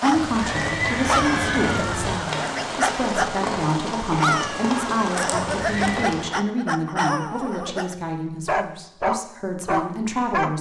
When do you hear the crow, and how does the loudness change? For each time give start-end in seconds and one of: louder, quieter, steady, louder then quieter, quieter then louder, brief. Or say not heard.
not heard.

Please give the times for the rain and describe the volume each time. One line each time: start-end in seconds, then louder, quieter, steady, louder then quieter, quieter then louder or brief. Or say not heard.
0.0-6.3 steady.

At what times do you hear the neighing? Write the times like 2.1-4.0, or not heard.
0.1-2.1, 5.3-6.1.